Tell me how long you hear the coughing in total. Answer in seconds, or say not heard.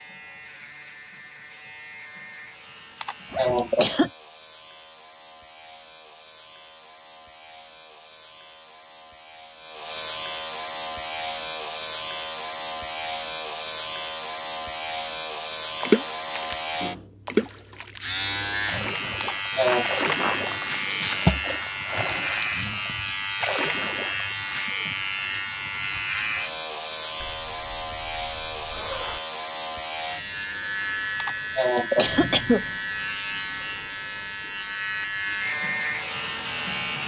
3 s.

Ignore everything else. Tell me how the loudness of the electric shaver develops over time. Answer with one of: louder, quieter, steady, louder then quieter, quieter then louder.
louder.